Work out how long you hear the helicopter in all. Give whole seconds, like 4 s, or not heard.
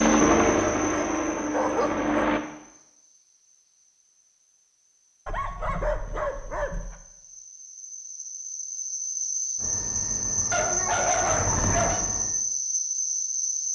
5 s.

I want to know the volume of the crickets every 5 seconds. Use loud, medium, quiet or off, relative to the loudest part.
quiet, medium, loud.